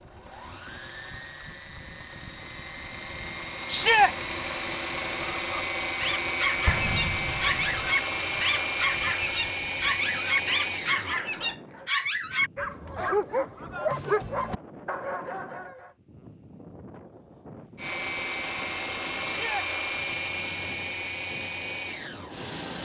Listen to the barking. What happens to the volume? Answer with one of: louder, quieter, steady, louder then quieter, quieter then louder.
steady.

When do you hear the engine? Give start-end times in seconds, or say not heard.
0.0-11.6, 17.8-22.8.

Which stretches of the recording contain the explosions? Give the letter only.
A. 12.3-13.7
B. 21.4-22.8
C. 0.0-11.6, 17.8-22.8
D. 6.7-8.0
D.